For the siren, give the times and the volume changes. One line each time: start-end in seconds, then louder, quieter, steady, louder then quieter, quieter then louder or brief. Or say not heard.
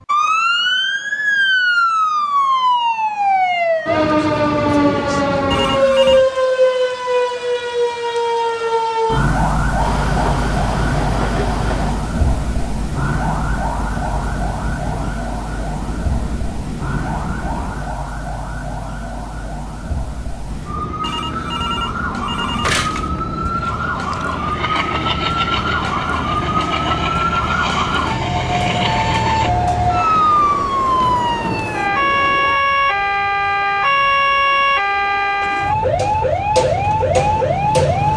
0.1-38.1 quieter then louder.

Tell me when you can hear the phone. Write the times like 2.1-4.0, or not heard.
5.5-6.2, 21.0-23.1.